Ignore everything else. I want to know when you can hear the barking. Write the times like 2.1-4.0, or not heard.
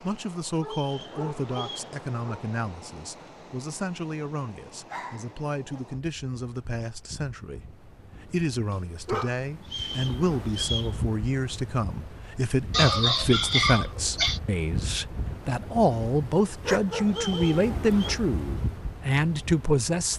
0.5-2.5, 4.8-5.8, 8.7-9.9, 12.7-14.4, 16.6-18.2.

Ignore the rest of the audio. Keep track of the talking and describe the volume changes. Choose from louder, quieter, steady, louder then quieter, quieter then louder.
louder.